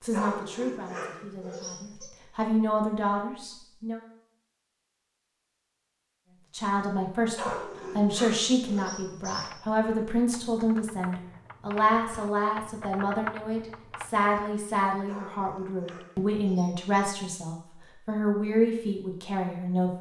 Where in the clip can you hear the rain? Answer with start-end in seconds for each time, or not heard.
not heard.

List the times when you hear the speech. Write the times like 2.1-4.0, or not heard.
0.0-4.0, 6.5-19.9.